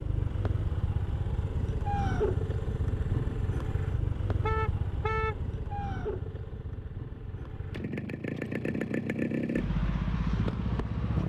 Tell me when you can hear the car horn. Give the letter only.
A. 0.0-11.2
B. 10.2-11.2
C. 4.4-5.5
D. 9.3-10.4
C.